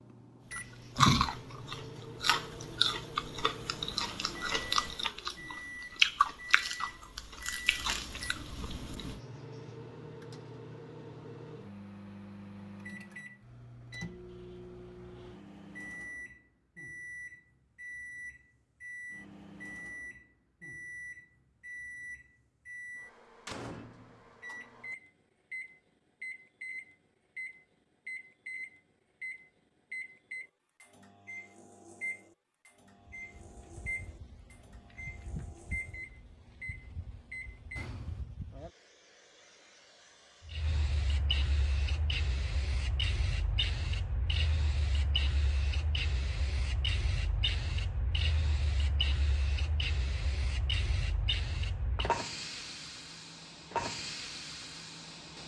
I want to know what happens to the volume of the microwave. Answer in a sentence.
The loudness of the microwave stays about the same.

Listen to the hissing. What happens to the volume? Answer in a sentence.
The volume of the hissing goes up.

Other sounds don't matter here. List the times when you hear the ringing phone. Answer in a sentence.
You can't hear the ringing phone here.